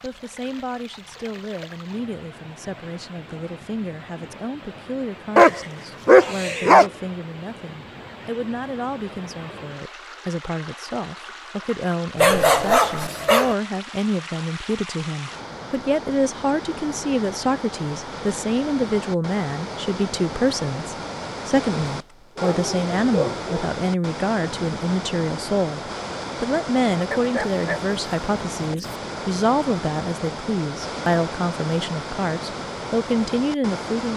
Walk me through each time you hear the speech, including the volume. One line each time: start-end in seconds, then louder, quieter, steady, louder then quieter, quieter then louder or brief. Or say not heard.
0.0-34.1 louder.